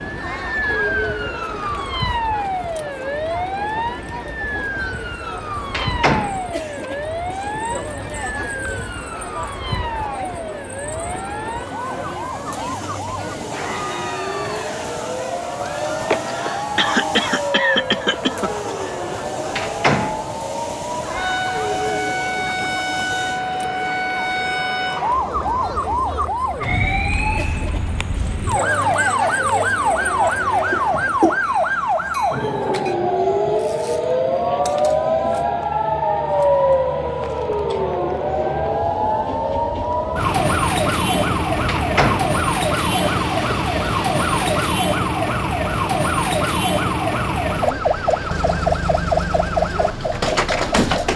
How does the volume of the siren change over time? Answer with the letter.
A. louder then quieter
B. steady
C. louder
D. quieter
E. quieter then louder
C.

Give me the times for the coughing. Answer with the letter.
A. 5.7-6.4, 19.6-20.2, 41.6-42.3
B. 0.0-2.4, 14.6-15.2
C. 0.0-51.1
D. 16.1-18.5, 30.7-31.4
D.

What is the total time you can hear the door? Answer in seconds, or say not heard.
2 s.